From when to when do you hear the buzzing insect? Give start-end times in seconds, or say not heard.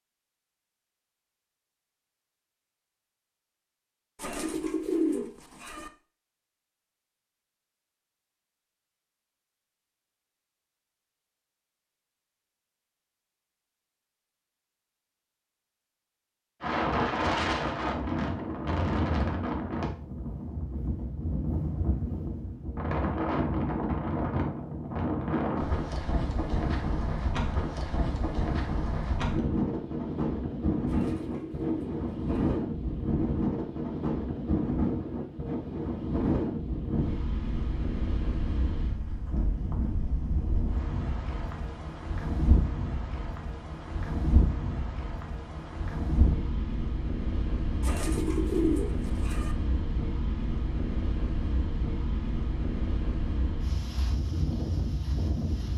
not heard.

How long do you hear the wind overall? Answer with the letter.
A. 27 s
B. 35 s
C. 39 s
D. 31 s
C.